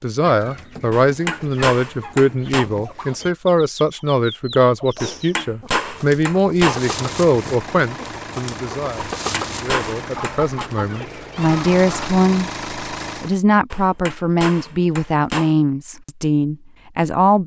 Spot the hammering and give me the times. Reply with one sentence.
You can hear the hammering from 0.9 to 2.7 s, from 5.0 to 6.8 s, from 8.9 to 10.7 s and from 13.7 to 15.6 s.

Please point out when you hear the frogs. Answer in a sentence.
The frogs can't be heard in this clip.